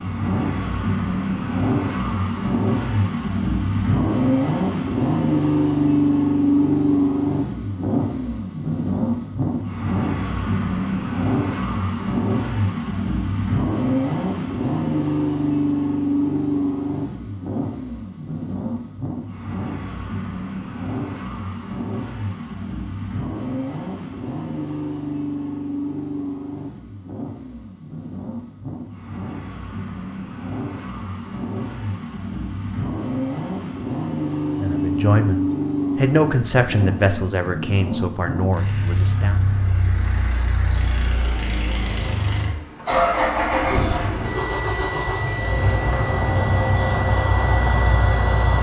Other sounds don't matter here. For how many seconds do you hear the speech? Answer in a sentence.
You can hear the speech for 5 seconds altogether.